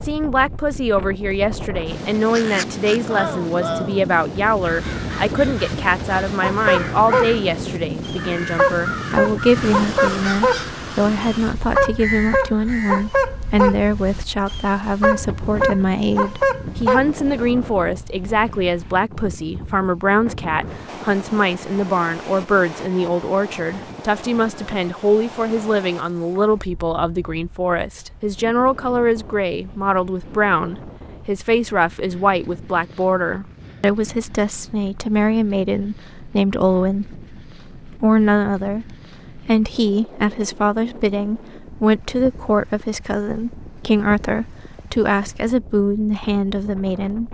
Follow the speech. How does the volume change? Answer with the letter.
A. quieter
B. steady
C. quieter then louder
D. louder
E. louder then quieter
B.